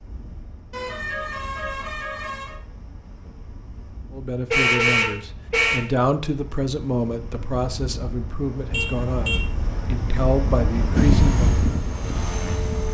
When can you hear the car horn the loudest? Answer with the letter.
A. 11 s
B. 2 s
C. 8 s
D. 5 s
D.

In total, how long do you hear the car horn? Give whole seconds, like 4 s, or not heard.
4 s.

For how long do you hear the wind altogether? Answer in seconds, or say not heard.
13 s.